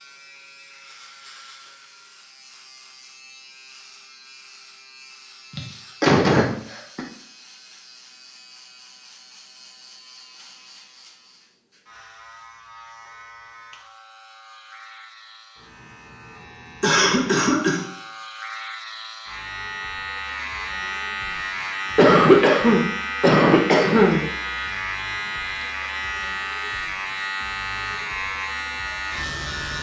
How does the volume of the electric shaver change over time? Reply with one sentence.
The loudness of the electric shaver goes up.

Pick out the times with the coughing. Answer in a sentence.
The coughing can be heard from 5.5 to 7.0 s, from 16.8 to 17.9 s and from 21.9 to 24.2 s.